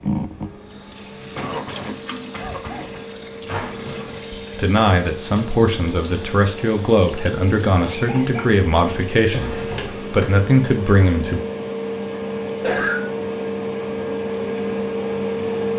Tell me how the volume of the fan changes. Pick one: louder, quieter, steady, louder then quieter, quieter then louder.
louder.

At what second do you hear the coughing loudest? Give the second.
13 s.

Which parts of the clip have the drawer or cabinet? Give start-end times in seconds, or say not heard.
3.5-4.3, 9.2-10.3.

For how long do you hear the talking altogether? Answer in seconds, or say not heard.
7 s.